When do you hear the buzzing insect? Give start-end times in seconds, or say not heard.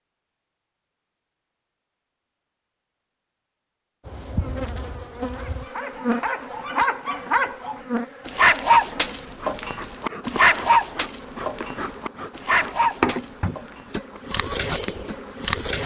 4.0-15.8.